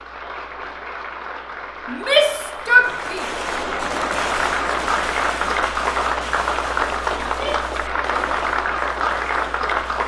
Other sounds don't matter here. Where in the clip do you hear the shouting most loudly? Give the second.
3 s.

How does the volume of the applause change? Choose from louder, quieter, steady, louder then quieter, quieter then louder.
louder.